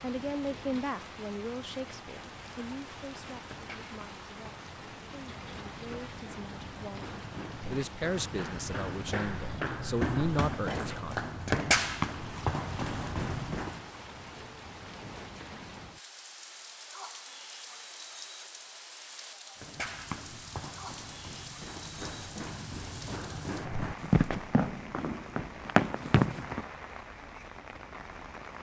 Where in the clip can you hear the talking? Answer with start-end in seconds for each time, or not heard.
0.0-11.2.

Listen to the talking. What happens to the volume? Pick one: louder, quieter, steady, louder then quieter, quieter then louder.
quieter then louder.